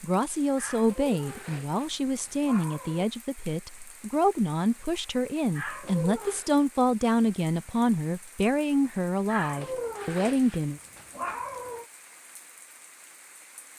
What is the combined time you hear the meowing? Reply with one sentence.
The meowing can be heard for 6 seconds in total.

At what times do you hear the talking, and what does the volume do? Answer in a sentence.
The talking can be heard from 0.0 to 10.8 s, at a steady volume.